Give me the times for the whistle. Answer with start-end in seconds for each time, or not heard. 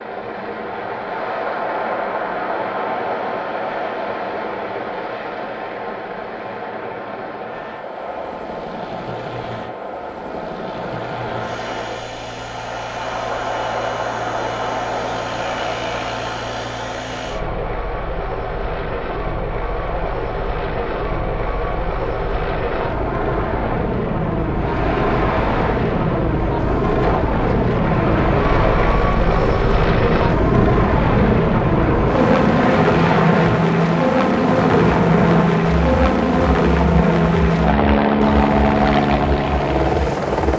not heard.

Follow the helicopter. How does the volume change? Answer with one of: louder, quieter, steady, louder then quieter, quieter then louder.
louder.